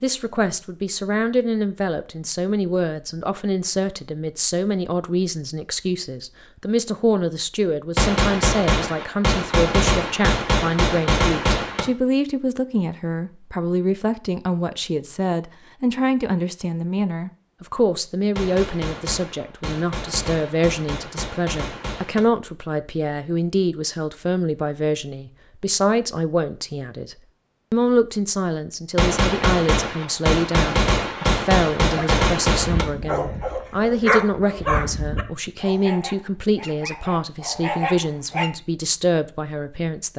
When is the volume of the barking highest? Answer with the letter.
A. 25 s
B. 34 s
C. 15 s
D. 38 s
B.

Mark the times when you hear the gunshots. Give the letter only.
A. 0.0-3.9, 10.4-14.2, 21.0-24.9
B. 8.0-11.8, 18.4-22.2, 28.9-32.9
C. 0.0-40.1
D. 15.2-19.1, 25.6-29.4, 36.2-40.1
B.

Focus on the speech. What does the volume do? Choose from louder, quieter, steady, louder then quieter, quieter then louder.
steady.